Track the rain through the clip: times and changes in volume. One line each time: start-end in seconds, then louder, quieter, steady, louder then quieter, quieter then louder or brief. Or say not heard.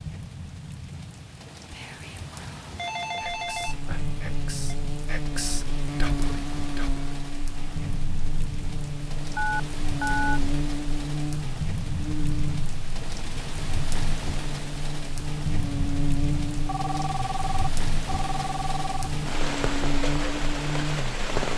0.0-21.5 louder.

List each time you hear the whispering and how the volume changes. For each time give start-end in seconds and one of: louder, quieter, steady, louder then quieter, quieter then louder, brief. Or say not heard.
1.7-7.2 louder.